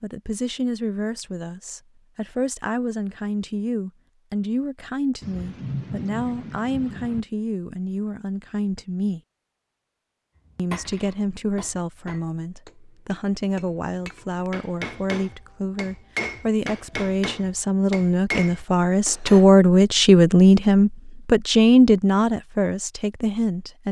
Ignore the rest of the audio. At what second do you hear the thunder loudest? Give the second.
6 s.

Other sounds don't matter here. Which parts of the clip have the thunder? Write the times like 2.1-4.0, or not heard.
5.2-7.2.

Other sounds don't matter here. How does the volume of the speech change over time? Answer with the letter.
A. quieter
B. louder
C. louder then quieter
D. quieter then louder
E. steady
B.